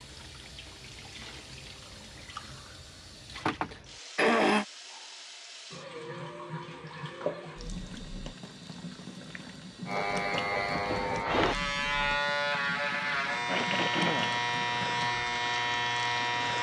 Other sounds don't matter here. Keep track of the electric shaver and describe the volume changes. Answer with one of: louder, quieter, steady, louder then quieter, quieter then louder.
steady.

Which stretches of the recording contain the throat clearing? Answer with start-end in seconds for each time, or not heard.
3.5-4.7, 13.4-14.4.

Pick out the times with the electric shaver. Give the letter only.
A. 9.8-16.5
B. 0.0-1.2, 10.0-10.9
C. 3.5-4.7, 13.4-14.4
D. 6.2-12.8
A.